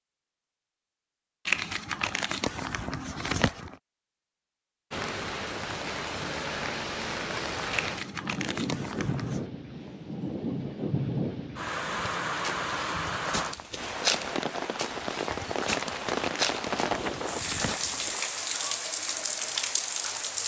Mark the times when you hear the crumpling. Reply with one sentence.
The crumpling can be heard from 1.4 to 3.8 s, from 7.7 to 9.4 s and from 15.7 to 18.1 s.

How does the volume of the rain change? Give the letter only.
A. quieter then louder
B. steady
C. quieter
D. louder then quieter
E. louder
B.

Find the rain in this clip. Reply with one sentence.
You can hear the rain from 4.9 to 20.4 s.